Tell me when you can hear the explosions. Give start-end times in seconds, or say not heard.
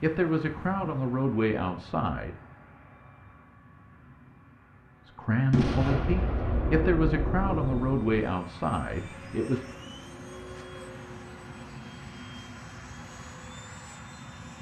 5.5-8.1.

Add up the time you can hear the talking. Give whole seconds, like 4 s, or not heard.
7 s.